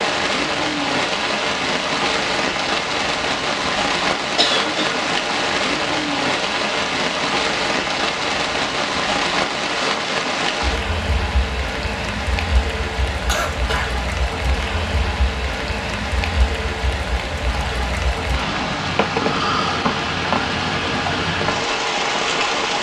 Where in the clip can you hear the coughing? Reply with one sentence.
The coughing can be heard from 4.3 to 4.9 s and from 13.2 to 13.9 s.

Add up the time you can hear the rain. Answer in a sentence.
You can hear the rain for 23 seconds altogether.